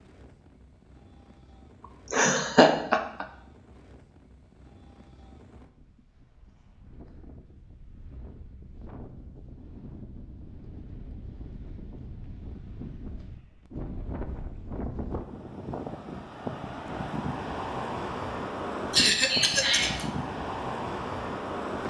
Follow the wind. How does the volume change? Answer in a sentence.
The volume of the wind goes up.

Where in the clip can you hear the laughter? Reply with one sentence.
You can hear the laughter from 2.1 to 3.2 s and from 18.9 to 20.1 s.